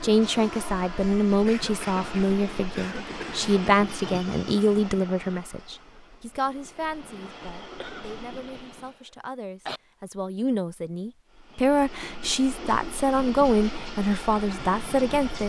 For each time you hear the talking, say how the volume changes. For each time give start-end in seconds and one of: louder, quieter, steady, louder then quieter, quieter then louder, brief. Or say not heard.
0.0-15.4 quieter then louder.